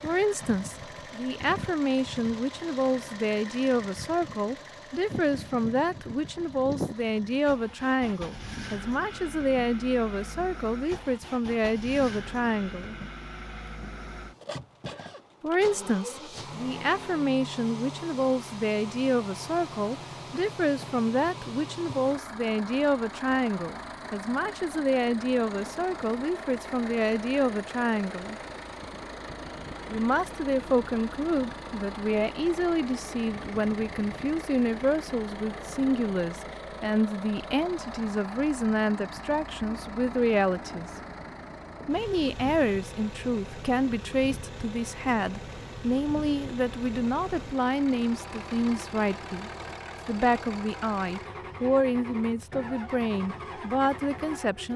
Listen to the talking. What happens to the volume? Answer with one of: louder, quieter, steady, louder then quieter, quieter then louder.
steady.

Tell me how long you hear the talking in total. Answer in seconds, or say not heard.
50 s.